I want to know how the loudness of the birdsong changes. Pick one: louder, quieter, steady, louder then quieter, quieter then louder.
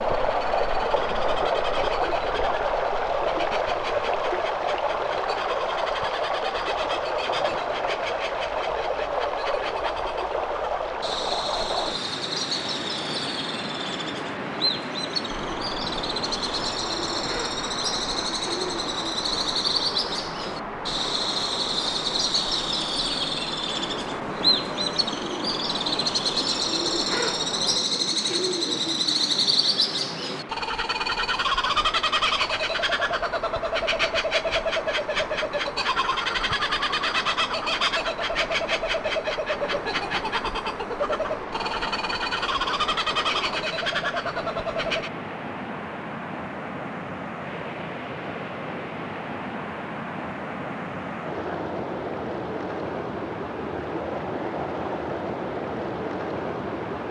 louder.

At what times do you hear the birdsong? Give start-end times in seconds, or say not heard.
0.1-45.1.